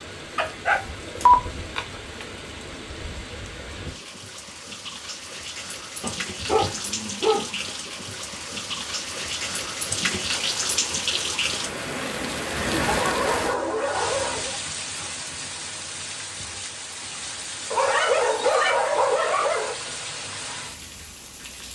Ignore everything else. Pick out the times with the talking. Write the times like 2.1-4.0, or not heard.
not heard.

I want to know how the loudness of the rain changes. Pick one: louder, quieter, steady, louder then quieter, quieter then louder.
louder then quieter.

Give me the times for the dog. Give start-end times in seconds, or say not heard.
0.3-2.2, 6.0-7.7, 12.8-14.6, 17.7-19.8.